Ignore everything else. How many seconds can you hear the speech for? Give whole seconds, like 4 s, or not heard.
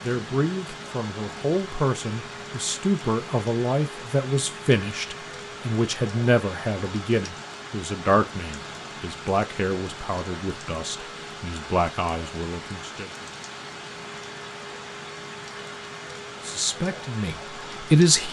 15 s.